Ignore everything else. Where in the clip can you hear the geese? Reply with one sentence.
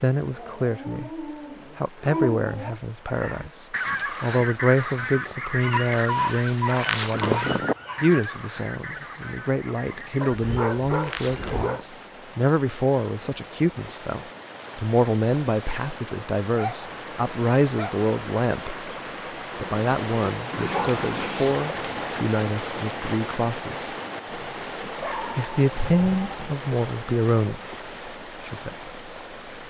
You can hear the geese from 3.1 to 11.9 s.